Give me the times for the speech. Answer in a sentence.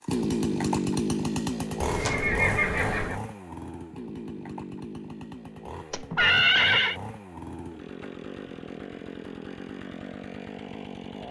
You can't hear the speech here.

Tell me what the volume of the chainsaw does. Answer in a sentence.
The loudness of the chainsaw goes down.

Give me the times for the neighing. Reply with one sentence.
The neighing can be heard from 1.8 to 3.2 s and from 5.9 to 7.0 s.